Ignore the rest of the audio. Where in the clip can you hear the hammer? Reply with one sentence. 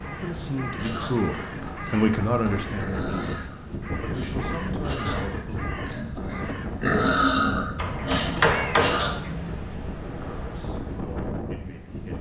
The hammer can be heard from 1.2 to 2.5 s and from 7.8 to 9.1 s.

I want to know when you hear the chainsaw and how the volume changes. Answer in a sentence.
You can't hear the chainsaw here.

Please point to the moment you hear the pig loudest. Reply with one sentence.
The volume of the pig peaks at 7 seconds.